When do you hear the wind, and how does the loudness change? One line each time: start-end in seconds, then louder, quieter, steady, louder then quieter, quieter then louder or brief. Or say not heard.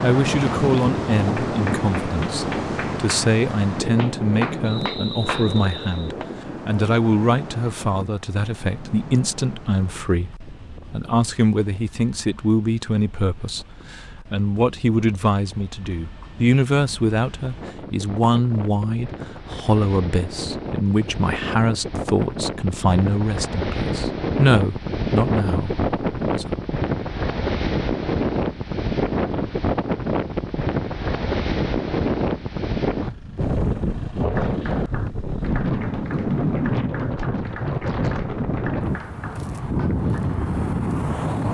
0.0-41.4 quieter then louder.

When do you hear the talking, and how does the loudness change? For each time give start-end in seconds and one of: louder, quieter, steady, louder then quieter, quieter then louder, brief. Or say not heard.
0.0-26.6 steady.